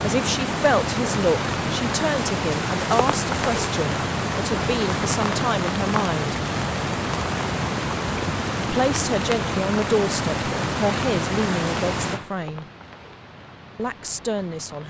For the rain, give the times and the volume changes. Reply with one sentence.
You can hear the rain from 0.0 to 14.8 s, getting quieter.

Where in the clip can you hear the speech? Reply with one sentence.
You can hear the speech from 0.0 to 6.3 s, from 8.6 to 12.7 s and from 13.8 to 14.8 s.